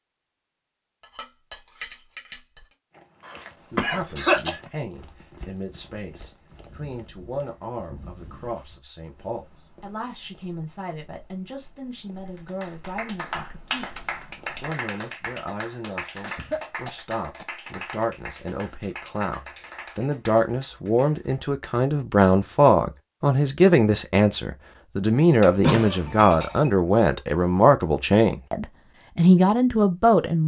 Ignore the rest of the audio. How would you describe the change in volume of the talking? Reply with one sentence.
The volume of the talking goes up.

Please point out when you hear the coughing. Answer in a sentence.
You can hear the coughing from 3.2 to 4.6 s, from 16.2 to 17.4 s and from 25.6 to 26.1 s.